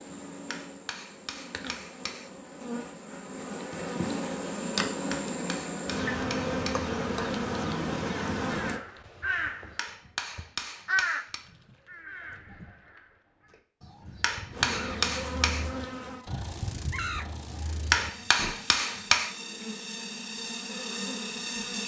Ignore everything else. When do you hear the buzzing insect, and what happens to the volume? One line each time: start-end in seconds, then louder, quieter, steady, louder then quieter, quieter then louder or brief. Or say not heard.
0.0-8.8 louder
14.5-21.8 quieter then louder.